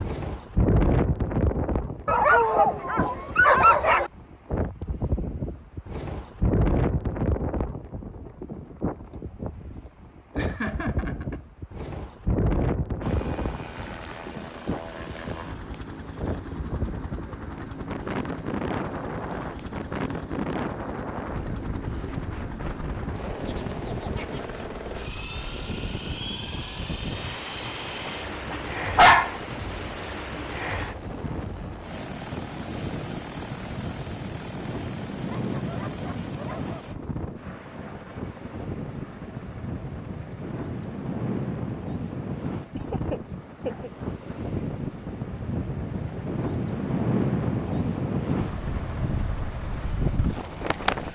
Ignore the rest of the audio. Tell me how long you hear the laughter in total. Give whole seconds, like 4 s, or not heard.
3 s.